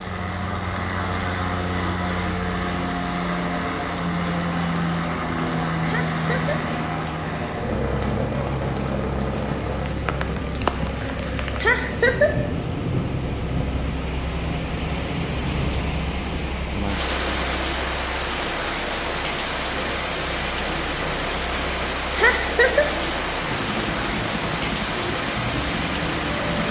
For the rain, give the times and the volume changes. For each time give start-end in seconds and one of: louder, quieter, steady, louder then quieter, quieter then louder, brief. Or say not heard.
0.0-26.6 louder.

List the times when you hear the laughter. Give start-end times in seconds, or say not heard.
5.8-6.5, 11.6-12.3, 22.1-22.9.